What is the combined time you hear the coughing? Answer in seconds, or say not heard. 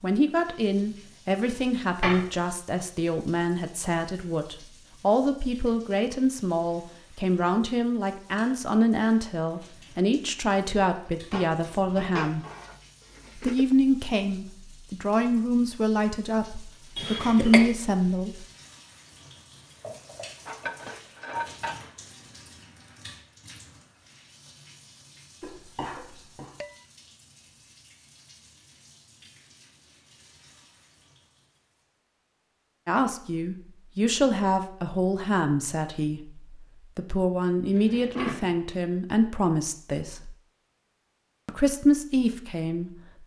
2 s.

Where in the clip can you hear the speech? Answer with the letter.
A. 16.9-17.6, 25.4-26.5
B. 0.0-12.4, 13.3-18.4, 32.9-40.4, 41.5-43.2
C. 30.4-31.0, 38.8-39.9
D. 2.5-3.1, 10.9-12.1
B.